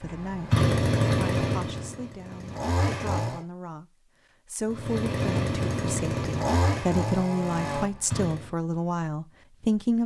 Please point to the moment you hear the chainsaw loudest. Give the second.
1 s.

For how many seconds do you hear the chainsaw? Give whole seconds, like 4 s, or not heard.
7 s.